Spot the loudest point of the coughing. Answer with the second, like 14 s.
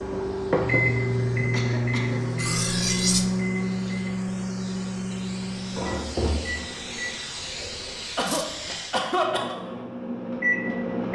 9 s.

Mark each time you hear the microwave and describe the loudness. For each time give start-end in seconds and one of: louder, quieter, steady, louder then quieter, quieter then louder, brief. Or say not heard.
0.0-7.2 quieter
9.2-11.1 brief.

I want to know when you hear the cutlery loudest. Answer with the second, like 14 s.
3 s.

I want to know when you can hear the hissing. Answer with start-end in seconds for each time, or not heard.
0.0-9.1.